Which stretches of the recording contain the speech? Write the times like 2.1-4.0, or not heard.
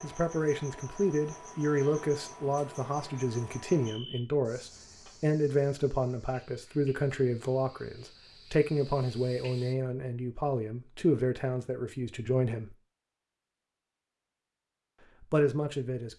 0.0-12.8, 15.2-16.1.